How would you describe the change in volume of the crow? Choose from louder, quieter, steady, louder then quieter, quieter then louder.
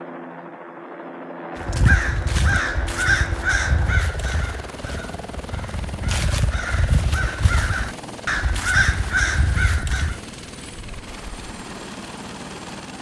quieter then louder.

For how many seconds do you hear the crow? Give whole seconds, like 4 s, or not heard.
9 s.